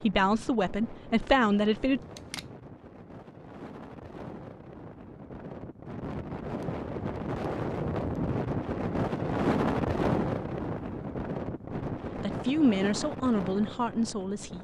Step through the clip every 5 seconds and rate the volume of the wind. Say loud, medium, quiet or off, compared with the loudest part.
quiet, loud, loud.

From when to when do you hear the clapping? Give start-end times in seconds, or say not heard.
not heard.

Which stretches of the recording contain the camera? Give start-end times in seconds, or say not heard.
1.9-2.5.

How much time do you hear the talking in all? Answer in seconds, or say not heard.
4 s.